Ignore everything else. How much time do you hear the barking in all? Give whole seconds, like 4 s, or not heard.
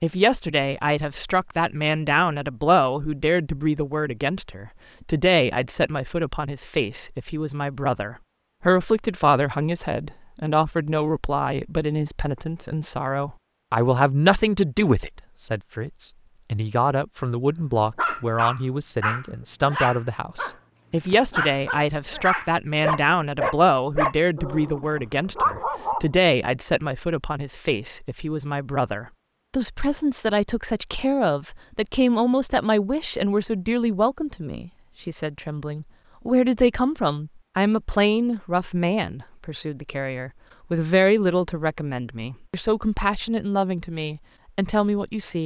8 s.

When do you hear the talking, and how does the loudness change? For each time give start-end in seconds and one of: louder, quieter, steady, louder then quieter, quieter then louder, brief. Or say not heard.
0.0-45.4 steady.